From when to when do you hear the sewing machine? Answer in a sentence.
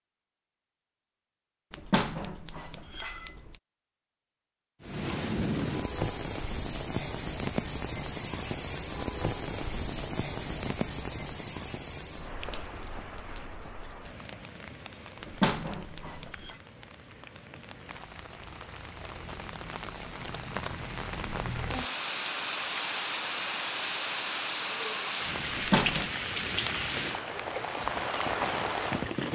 The sewing machine can't be heard in this clip.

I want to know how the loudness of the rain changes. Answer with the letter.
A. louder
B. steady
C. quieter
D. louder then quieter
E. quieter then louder
E.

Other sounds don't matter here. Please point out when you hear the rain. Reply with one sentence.
You can hear the rain from 4.8 to 29.2 s.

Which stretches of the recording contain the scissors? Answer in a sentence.
The scissors can be heard from 1.7 to 3.6 s, from 15.2 to 16.6 s and from 25.5 to 26.1 s.